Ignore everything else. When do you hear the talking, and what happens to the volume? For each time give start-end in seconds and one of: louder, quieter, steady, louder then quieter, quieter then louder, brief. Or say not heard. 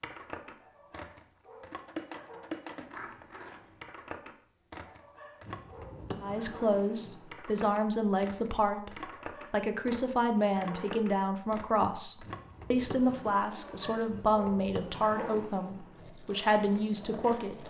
6.2-17.6 steady.